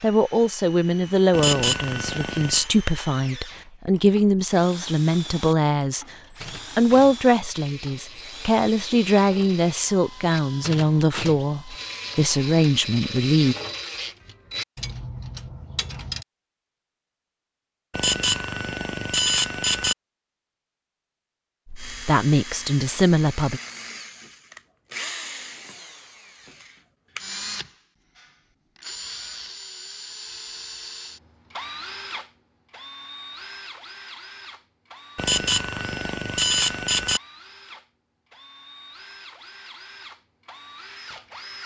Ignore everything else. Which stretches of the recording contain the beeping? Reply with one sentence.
The beeping can be heard from 1.3 to 2.7 s, from 17.9 to 19.9 s and from 35.1 to 37.2 s.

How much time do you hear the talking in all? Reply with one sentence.
The talking can be heard for 15 seconds in total.